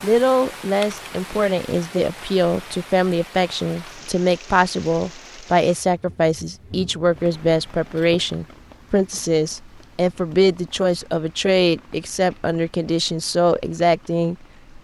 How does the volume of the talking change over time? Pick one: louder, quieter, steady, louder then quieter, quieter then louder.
steady.